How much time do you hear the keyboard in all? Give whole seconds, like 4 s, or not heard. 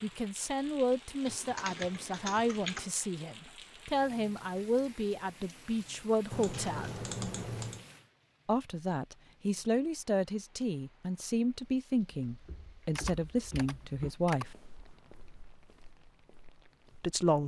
5 s.